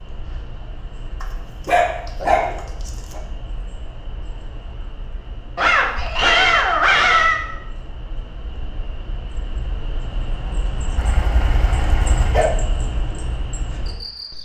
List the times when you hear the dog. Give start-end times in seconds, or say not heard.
1.2-3.2, 5.5-7.4, 10.9-12.5.